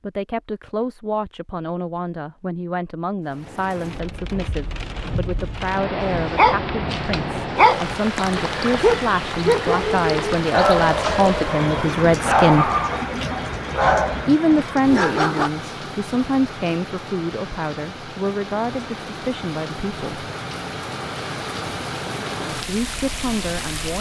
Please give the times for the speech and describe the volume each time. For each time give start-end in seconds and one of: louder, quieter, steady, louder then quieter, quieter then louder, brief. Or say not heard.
0.0-12.7 louder
14.2-20.2 quieter
22.6-23.9 brief.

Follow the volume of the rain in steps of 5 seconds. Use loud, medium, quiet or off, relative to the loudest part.
medium, loud, loud, medium, loud.